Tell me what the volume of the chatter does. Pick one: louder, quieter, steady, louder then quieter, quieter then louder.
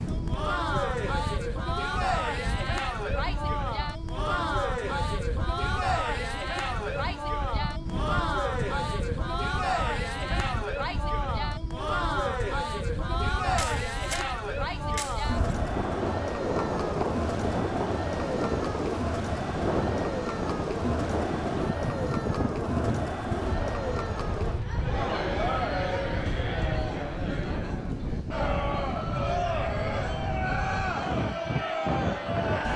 steady.